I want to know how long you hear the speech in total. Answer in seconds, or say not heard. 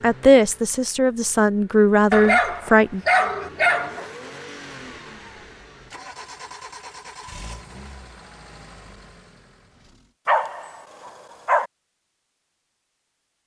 3 s.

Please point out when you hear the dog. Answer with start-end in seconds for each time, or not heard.
2.1-4.0, 10.2-11.7.